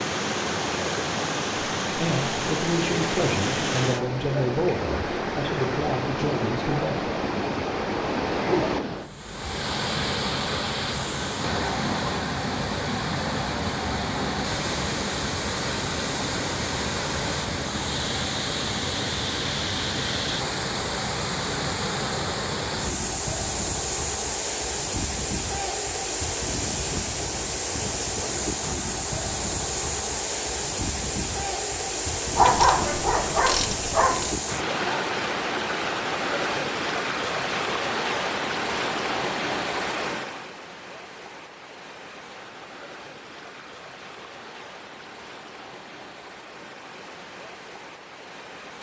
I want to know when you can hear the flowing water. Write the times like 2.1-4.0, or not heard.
0.0-48.7.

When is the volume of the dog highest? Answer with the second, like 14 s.
33 s.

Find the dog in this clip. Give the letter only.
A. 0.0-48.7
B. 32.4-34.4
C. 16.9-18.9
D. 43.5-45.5
B.